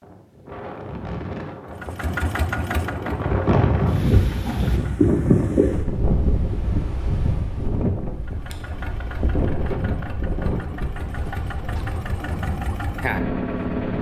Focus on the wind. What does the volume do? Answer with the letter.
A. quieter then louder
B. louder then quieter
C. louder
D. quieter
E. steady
B.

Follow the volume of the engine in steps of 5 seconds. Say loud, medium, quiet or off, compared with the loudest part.
loud, medium, loud.